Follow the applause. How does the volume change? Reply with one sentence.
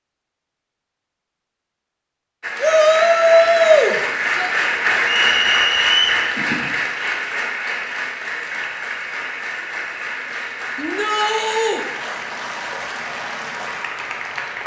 The volume of the applause goes down.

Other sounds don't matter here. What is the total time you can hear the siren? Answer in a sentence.
You can't hear the siren here.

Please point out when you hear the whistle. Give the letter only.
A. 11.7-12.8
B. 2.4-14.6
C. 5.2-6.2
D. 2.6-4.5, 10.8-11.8
C.